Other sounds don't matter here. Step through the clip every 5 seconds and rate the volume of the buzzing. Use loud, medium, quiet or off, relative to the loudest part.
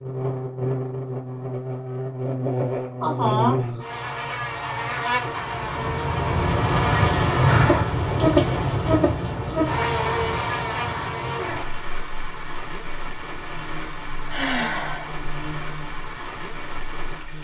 loud, loud, medium, quiet.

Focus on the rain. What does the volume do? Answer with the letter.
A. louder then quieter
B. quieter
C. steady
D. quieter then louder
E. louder
B.